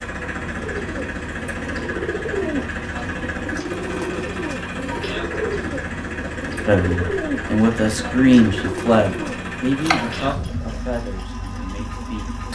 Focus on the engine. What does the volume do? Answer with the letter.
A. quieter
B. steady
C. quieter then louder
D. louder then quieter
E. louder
B.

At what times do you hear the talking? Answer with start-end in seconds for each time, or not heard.
6.7-12.3.